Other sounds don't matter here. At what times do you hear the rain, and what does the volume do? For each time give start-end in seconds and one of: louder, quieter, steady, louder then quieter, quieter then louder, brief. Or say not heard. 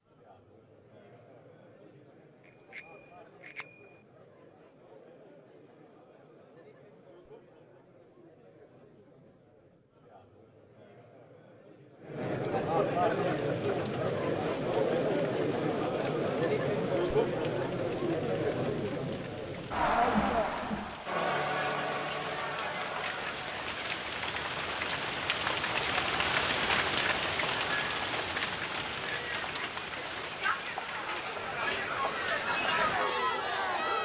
13.2-33.9 louder then quieter.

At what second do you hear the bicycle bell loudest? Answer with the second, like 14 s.
28 s.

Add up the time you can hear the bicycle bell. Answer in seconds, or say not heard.
3 s.